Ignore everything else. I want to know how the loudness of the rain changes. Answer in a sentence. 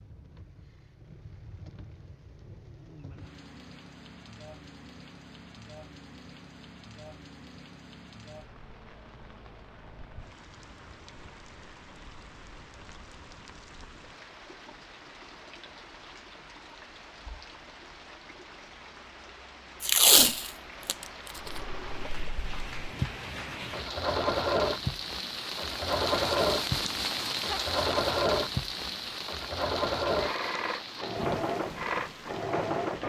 The loudness of the rain goes up.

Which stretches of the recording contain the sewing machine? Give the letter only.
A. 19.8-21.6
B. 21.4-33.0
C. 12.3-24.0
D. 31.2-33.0
B.